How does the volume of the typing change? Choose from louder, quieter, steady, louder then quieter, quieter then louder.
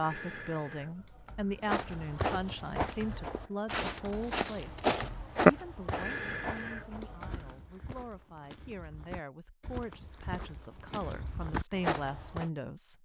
louder then quieter.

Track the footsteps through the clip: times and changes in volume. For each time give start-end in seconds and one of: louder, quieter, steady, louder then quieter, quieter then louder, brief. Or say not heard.
1.6-12.5 quieter then louder.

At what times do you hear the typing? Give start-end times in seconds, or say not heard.
0.0-7.5.